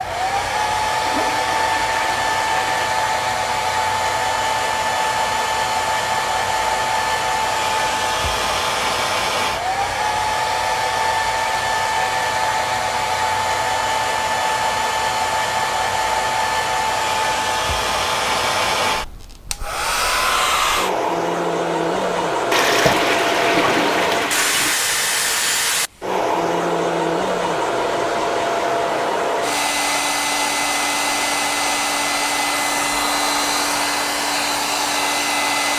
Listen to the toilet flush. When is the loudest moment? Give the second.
23 s.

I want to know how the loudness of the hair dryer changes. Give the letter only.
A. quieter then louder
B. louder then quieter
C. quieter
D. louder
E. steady
E.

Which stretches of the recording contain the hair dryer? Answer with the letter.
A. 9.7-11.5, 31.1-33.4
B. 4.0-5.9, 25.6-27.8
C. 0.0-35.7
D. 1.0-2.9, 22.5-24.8
C.